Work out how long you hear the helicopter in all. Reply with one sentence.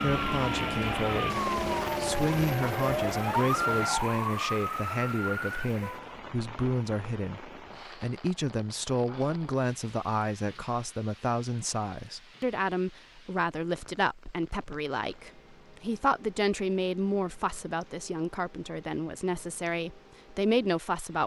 The helicopter can be heard for 4 seconds in total.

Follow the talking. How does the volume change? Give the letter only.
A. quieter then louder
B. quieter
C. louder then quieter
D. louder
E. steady
E.